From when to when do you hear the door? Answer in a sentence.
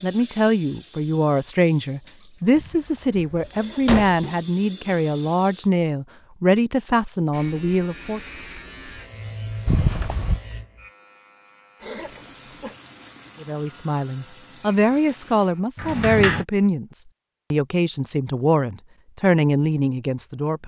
The door can be heard from 2.5 to 4.2 s, from 9.7 to 10.4 s and from 15.8 to 16.4 s.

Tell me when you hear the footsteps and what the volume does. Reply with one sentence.
The footsteps can't be heard in this clip.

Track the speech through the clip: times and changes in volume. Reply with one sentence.
The speech can be heard from 0.0 to 8.2 s, at a steady volume; and from 13.4 to 20.6 s, at a steady volume.